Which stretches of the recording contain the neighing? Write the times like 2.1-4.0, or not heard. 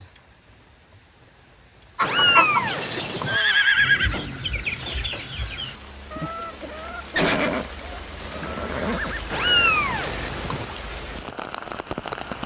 3.2-4.2, 7.2-9.2.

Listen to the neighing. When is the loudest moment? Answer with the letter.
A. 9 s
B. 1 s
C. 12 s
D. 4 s
D.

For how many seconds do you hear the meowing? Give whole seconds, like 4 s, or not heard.
3 s.